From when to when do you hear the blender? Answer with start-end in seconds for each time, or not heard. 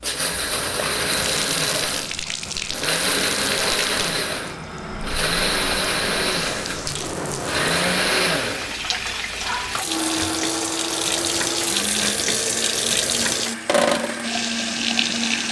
0.0-15.4.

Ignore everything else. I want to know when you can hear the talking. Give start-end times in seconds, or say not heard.
not heard.